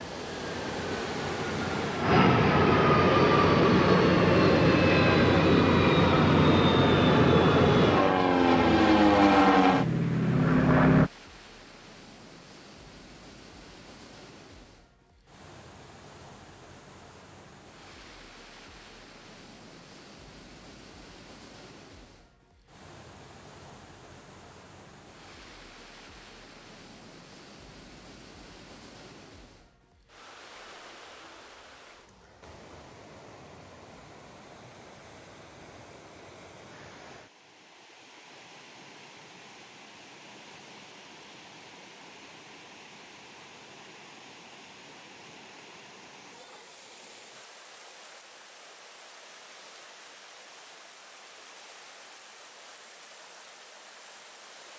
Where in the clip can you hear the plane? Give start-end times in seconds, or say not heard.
0.0-11.1.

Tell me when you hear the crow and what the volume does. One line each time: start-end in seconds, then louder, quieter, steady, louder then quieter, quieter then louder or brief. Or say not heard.
not heard.